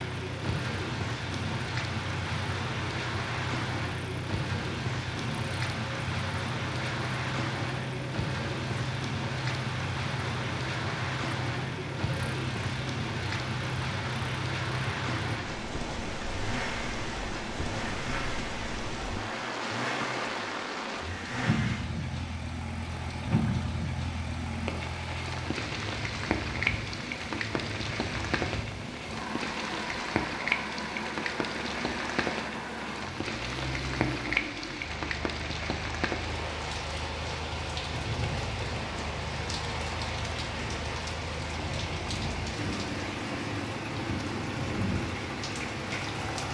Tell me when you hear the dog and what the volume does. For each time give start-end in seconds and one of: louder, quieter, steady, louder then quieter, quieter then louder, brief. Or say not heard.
not heard.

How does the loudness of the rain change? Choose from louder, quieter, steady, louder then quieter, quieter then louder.
steady.